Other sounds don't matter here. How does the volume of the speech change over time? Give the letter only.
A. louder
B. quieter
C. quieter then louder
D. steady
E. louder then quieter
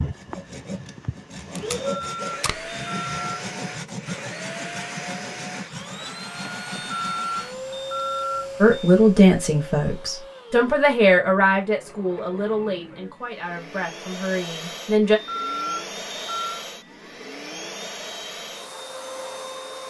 B.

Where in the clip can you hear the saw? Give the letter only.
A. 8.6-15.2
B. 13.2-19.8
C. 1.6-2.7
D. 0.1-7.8
D.